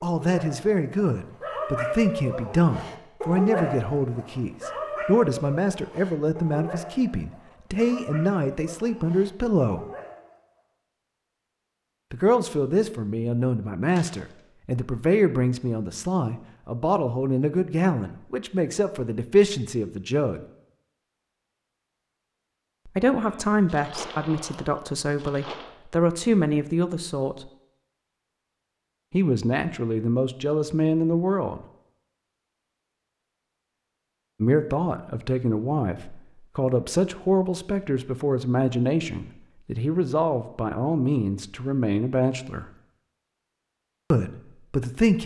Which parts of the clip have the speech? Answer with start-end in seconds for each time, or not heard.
0.0-9.8, 12.1-20.4, 22.9-27.5, 29.1-31.6, 34.4-42.6, 44.1-45.2.